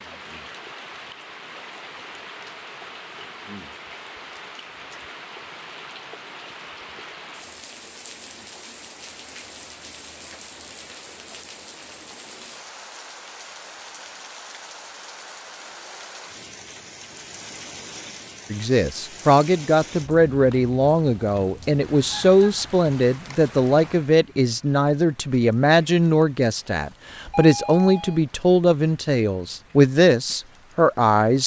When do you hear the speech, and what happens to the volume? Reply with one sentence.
The speech can be heard from 18.5 to 31.4 s, at a steady volume.